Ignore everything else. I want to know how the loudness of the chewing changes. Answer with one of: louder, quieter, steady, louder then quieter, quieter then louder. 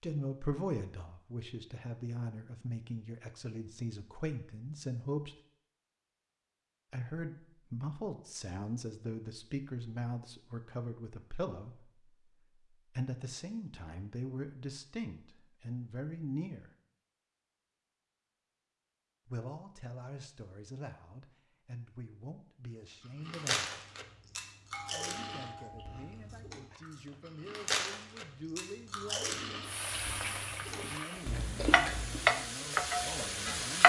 quieter then louder.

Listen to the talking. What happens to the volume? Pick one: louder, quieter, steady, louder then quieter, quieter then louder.
quieter.